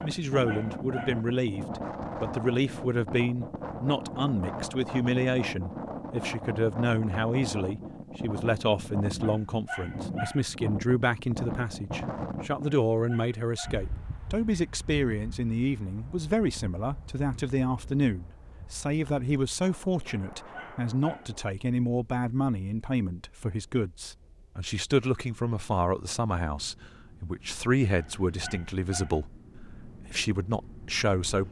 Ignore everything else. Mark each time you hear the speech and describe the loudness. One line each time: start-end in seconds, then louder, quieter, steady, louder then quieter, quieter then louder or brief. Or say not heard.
0.0-31.4 steady.